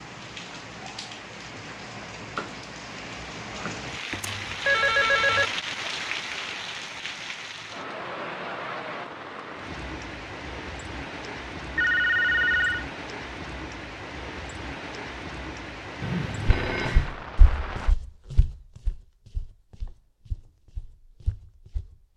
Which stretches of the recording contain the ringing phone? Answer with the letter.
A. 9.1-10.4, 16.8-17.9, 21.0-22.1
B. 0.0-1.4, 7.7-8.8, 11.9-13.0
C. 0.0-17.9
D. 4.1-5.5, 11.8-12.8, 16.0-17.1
D.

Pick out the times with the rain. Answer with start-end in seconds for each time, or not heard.
0.0-17.9.